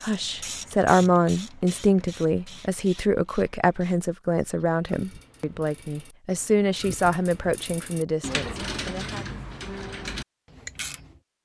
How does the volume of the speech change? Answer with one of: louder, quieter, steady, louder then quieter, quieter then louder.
quieter.